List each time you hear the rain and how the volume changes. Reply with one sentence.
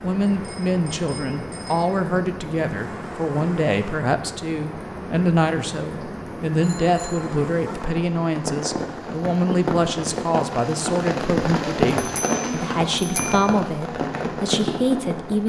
You can hear the rain from 0.0 to 15.4 s, getting louder.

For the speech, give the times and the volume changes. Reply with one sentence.
The speech can be heard from 0.0 to 15.4 s, at a steady volume.